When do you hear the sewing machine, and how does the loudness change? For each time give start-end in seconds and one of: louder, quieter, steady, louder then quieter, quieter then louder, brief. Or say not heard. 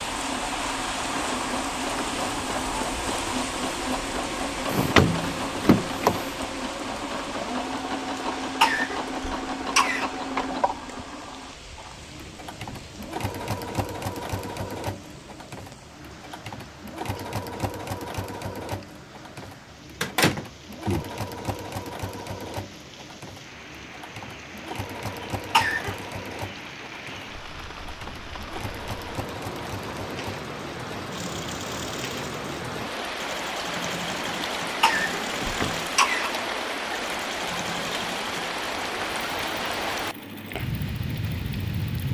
0.0-42.0 quieter.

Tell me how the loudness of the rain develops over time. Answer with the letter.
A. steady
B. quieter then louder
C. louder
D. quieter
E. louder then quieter
B.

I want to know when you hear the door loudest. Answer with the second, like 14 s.
5 s.